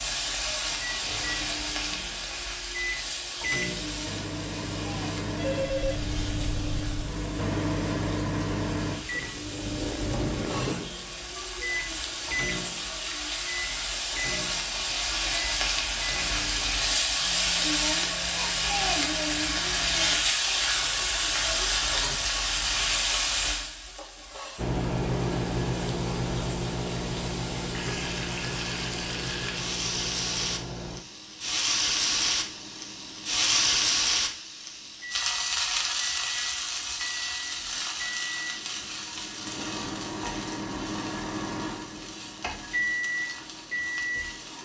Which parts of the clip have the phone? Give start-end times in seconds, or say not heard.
5.3-6.0.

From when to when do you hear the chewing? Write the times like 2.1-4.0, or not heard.
not heard.